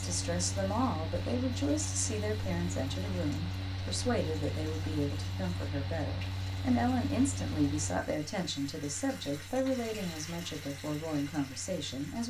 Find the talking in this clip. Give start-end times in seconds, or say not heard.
0.0-12.2.